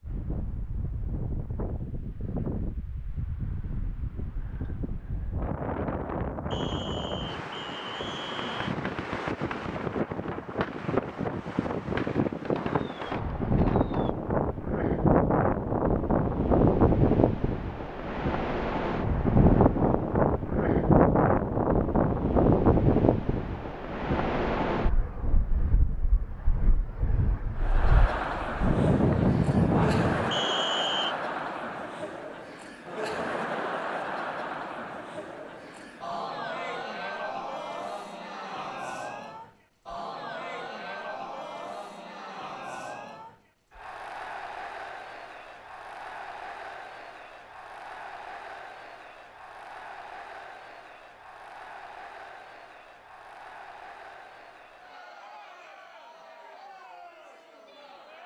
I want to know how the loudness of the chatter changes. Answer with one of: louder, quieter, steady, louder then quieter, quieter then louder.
quieter.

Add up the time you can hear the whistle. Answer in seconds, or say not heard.
3 s.